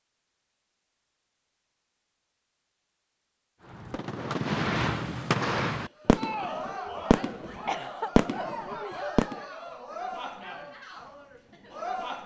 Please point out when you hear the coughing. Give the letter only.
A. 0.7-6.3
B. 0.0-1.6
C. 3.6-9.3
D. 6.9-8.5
D.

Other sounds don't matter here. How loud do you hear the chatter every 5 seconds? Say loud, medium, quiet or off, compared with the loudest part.
off, loud, loud.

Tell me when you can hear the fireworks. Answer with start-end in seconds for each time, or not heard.
3.6-9.3.